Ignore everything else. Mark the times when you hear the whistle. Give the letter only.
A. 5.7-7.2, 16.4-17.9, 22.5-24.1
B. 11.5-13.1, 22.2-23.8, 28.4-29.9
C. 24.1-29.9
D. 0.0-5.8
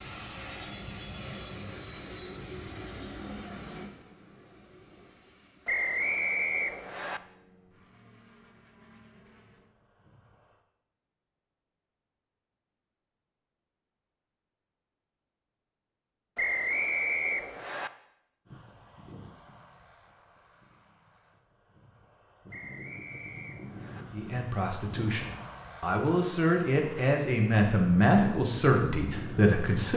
A.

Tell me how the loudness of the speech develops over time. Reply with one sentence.
The loudness of the speech goes up.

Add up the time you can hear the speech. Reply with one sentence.
You can hear the speech for 6 seconds altogether.